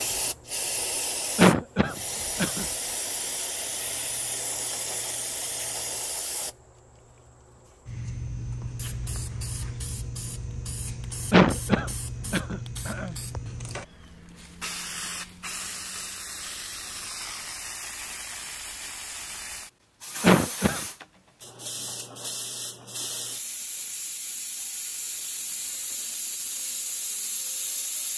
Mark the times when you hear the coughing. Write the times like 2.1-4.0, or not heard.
1.4-2.6, 11.3-13.2, 20.2-20.8.